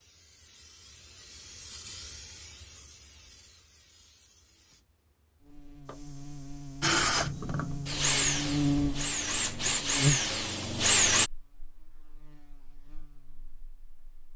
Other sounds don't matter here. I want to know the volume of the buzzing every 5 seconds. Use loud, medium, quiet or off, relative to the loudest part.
off, loud, loud.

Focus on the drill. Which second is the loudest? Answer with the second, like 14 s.
11 s.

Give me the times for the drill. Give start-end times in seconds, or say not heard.
6.8-11.3.